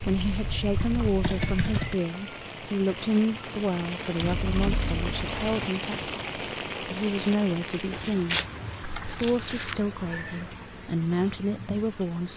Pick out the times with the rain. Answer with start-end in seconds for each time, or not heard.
0.0-12.3.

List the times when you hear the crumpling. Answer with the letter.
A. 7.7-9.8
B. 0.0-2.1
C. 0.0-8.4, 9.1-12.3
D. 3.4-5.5
A.